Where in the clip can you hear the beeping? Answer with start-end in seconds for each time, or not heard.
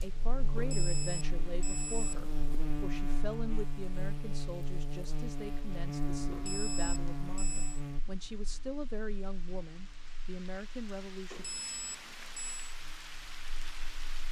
0.6-2.6, 6.3-7.8, 11.3-12.8.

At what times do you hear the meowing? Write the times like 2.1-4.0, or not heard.
not heard.